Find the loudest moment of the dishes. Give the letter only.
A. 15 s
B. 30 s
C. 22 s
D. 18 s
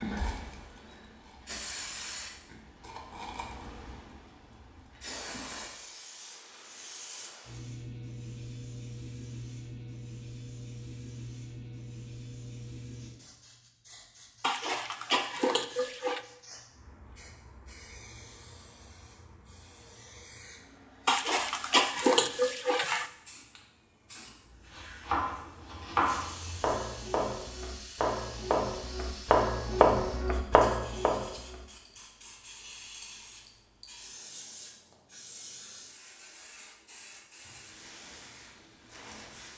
C.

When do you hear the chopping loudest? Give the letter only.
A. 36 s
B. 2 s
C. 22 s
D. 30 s
D.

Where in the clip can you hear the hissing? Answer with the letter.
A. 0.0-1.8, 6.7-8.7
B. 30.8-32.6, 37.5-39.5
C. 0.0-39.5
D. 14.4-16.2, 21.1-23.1
C.